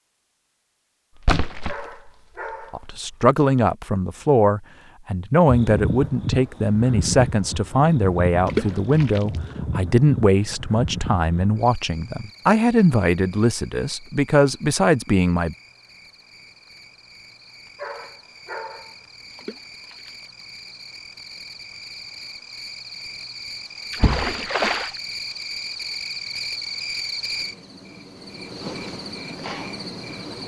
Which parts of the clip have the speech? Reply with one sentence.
The speech can be heard from 2.7 to 15.6 s.